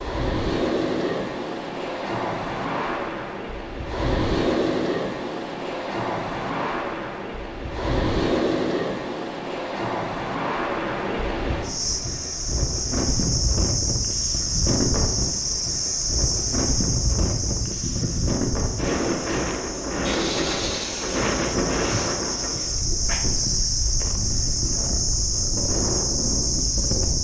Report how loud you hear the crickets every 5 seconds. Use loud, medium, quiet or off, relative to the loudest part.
off, off, loud, loud, loud, loud.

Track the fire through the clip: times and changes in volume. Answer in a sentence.
The fire can't be heard in this clip.